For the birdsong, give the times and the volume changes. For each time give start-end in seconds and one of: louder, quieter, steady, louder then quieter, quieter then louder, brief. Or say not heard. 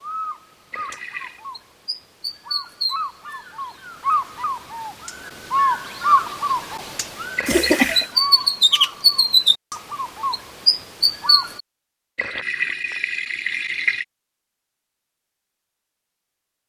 0.0-11.6 louder.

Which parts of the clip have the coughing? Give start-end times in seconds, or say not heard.
7.5-8.1.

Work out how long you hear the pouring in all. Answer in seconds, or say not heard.
3 s.